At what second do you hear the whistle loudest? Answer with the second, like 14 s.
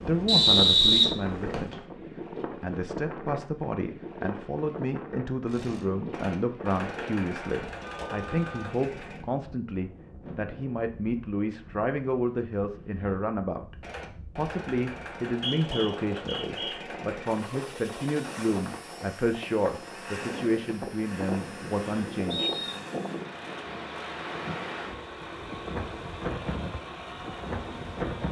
1 s.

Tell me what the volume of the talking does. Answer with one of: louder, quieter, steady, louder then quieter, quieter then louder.
steady.